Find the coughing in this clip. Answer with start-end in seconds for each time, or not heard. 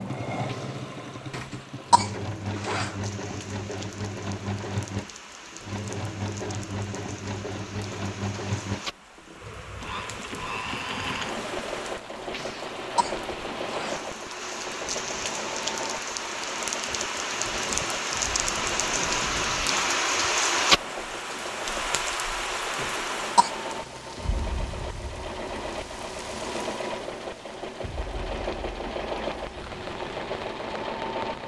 1.3-3.0, 12.3-14.0, 22.8-23.5.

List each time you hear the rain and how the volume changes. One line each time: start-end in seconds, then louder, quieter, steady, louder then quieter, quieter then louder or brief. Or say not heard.
0.0-31.4 louder then quieter.